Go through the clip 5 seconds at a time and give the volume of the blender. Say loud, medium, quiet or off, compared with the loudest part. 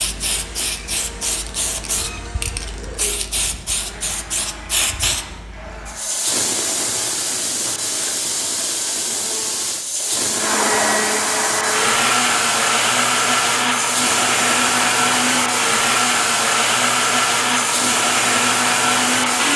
quiet, quiet, loud, loud.